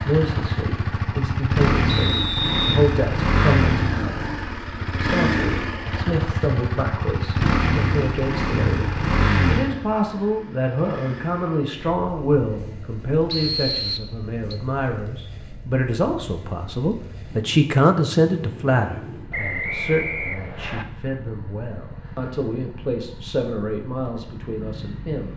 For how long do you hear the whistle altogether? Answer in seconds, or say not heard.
4 s.